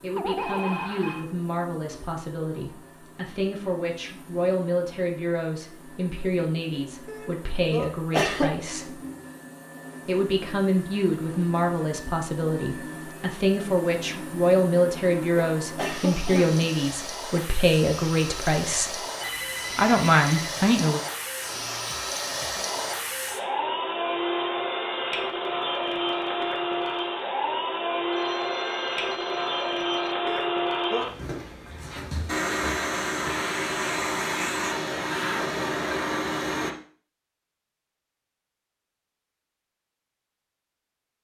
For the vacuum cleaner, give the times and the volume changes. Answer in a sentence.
The vacuum cleaner can be heard from 0.0 to 36.7 s, getting louder.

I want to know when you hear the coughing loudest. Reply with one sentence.
The loudest moment of the coughing is at 8 seconds.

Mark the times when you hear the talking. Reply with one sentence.
You can hear the talking from 0.0 to 8.9 s, from 10.1 to 19.0 s and from 19.8 to 21.0 s.